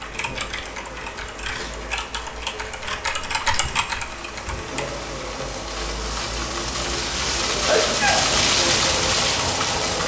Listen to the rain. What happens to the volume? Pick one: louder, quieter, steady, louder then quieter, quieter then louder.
louder.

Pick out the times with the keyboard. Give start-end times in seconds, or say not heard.
0.0-4.9.